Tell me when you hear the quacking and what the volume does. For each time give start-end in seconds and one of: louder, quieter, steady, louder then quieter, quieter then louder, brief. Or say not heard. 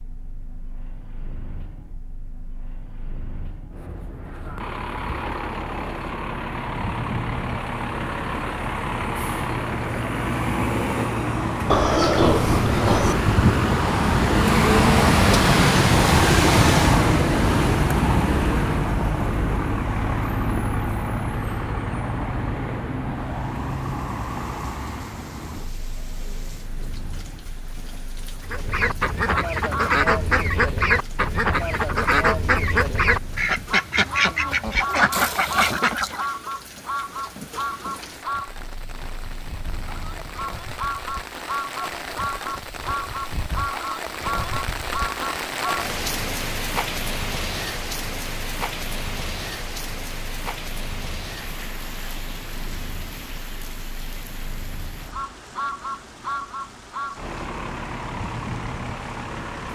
28.4-36.4 steady.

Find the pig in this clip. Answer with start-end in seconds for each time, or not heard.
11.7-13.2.